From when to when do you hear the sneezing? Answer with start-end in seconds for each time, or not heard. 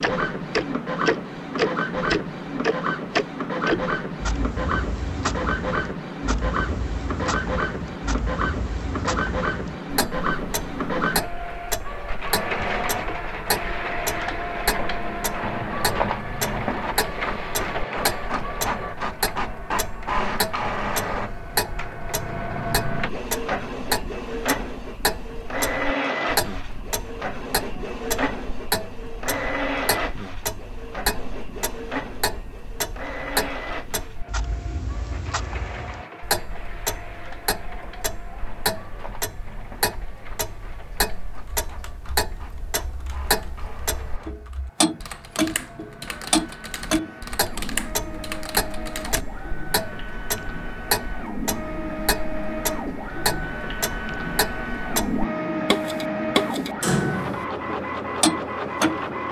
not heard.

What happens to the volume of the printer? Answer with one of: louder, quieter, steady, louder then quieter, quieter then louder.
quieter then louder.